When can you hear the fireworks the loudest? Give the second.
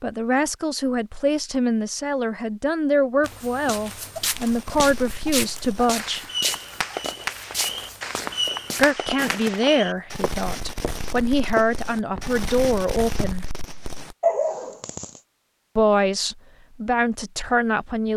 14 s.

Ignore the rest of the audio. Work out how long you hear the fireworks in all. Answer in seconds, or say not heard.
11 s.